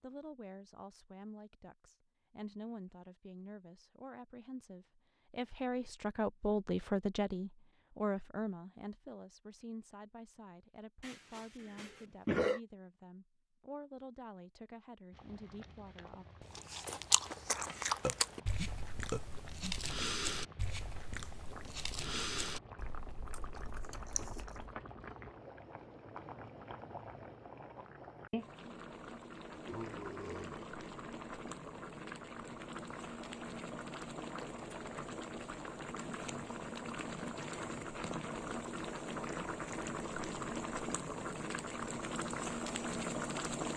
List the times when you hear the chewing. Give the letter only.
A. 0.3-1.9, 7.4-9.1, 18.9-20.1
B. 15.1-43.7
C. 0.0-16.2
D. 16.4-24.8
D.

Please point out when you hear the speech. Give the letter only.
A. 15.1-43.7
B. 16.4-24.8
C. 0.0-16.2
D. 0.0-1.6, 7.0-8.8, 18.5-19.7
C.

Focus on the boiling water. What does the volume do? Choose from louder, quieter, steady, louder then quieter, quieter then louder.
louder.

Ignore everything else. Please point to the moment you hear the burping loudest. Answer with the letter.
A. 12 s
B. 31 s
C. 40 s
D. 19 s
A.